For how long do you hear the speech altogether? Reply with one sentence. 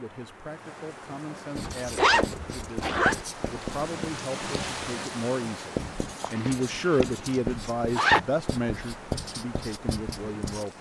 You can hear the speech for 11 seconds altogether.